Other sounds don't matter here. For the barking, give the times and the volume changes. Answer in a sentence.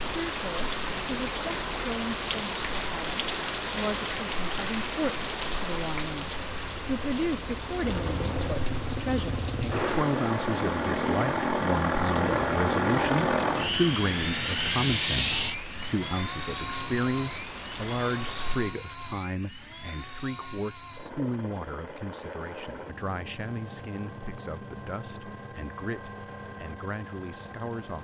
You can't hear the barking here.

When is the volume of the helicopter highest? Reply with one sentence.
The loudest moment of the helicopter is at 13 seconds.